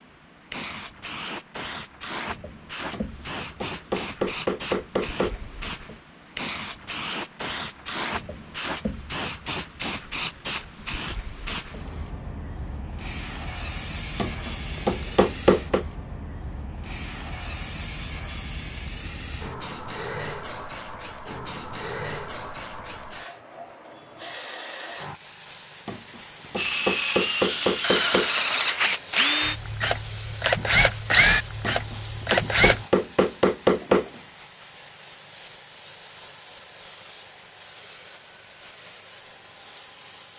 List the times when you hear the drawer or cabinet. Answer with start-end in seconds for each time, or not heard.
not heard.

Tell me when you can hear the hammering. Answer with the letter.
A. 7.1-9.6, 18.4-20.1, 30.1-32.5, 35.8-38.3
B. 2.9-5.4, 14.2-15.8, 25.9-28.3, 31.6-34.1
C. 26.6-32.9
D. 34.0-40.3
B.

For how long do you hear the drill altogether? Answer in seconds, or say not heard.
6 s.